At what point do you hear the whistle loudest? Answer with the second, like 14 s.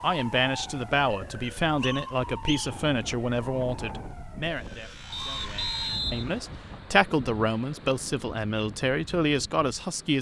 6 s.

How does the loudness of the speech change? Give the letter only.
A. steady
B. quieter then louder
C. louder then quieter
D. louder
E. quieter
B.